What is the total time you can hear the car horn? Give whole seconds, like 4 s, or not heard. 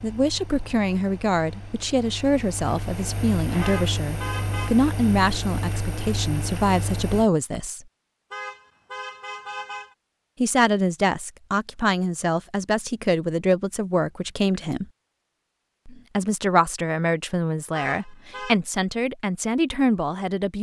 4 s.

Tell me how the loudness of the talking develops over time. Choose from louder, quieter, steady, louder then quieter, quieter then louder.
steady.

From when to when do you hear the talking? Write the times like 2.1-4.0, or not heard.
0.0-7.8, 10.4-14.8, 15.8-20.5.